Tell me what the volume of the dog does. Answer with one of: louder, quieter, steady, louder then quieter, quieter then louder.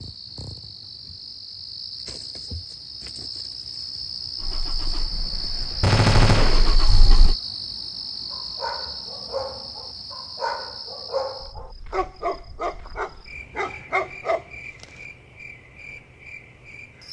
louder.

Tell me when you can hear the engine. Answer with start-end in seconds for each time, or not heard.
4.4-7.3.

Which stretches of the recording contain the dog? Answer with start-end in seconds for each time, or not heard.
8.3-14.8.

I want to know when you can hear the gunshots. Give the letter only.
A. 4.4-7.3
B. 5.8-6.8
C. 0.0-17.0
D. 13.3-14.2
B.